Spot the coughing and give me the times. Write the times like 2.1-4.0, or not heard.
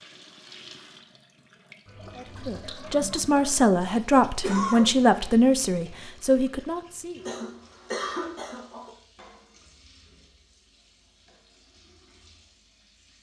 4.4-5.0, 7.2-8.9.